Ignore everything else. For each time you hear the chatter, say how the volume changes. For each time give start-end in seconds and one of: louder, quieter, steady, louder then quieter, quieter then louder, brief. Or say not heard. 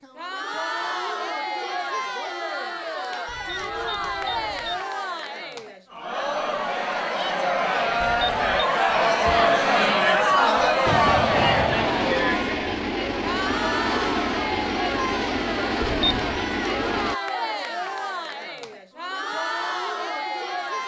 0.0-20.8 louder then quieter.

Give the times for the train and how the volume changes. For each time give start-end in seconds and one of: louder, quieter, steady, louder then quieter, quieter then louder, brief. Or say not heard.
10.8-17.1 steady.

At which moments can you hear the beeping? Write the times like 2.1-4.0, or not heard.
3.2-4.8, 8.0-8.7, 15.8-16.4.